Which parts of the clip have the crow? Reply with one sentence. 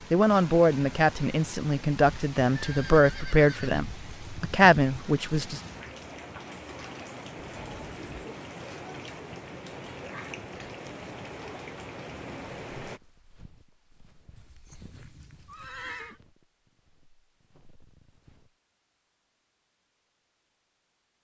You can't hear the crow here.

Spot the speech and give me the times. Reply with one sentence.
The speech can be heard from 0.1 to 5.6 s.